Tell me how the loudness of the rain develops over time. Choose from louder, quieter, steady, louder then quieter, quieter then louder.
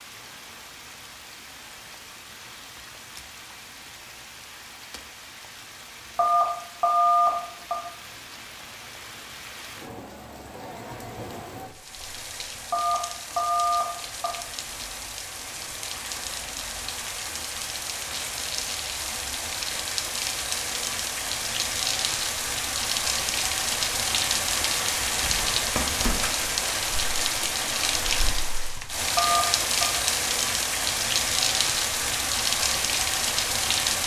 louder.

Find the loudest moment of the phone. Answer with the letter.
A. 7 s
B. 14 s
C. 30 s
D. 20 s
A.